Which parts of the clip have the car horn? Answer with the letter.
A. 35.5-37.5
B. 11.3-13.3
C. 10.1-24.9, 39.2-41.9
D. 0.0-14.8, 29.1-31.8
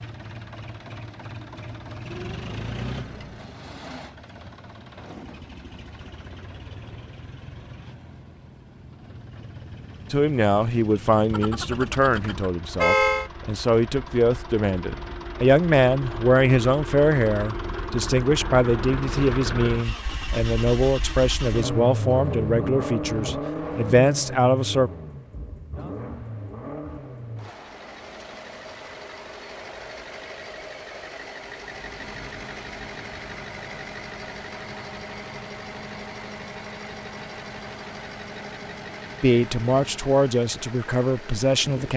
B.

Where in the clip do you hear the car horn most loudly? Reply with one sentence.
The loudest moment of the car horn is at 13 seconds.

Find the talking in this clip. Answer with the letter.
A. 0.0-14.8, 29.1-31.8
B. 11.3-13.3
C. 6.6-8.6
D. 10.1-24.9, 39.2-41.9
D.